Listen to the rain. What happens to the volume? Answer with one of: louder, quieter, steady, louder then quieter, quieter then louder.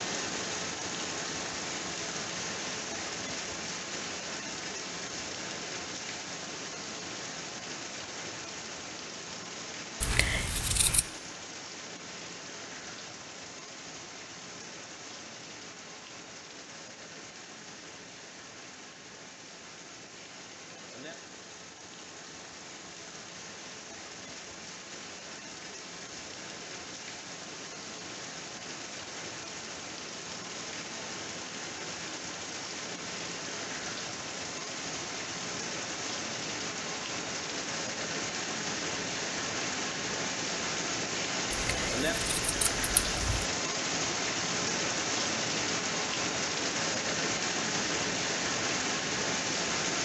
quieter then louder.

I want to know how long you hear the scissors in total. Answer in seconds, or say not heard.
3 s.